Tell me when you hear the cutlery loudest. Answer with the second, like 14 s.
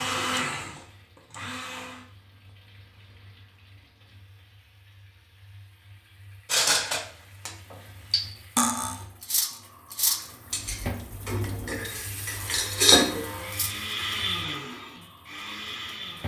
13 s.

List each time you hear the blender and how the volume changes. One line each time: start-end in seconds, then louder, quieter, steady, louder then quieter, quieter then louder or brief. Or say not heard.
0.0-2.0 brief
12.2-16.2 louder then quieter.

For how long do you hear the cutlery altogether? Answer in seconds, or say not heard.
7 s.